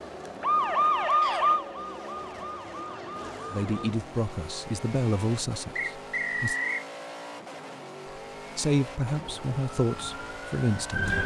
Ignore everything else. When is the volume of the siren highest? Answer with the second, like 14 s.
1 s.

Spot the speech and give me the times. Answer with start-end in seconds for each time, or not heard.
3.5-6.5, 8.6-11.1.